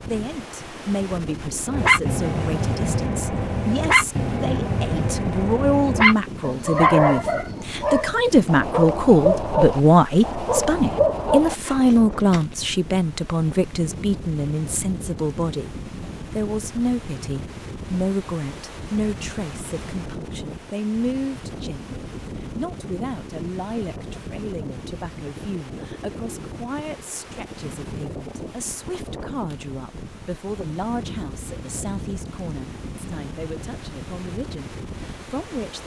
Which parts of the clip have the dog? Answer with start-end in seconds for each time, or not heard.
1.7-12.4.